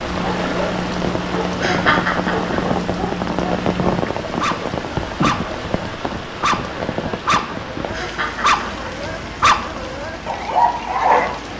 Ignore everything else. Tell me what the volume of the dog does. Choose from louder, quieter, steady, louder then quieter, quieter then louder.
louder.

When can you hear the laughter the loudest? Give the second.
2 s.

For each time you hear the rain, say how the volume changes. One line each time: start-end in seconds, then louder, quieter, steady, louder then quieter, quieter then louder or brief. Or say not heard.
0.0-11.5 quieter.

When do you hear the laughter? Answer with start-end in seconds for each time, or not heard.
1.6-2.5, 7.9-8.7.